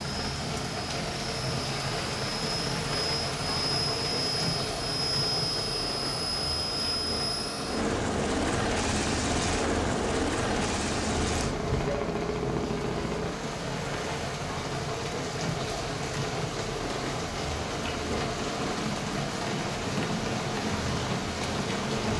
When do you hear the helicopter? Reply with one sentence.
You can hear the helicopter from 0.0 to 14.5 s.